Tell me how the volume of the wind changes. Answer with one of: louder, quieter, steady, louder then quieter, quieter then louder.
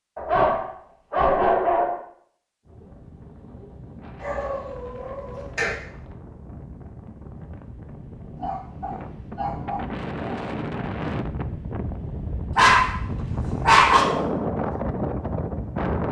louder.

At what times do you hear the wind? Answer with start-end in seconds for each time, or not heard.
2.6-16.0.